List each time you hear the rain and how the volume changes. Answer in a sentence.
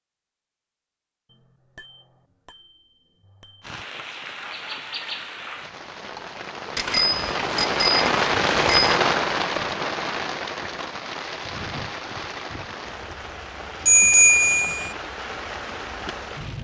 The rain can be heard from 3.6 to 16.5 s, getting louder then quieter.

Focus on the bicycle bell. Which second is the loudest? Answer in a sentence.
The loudest moment of the bicycle bell is at 14 seconds.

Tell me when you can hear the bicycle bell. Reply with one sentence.
The bicycle bell can be heard from 1.3 to 3.8 s, from 6.8 to 8.9 s and from 13.8 to 14.9 s.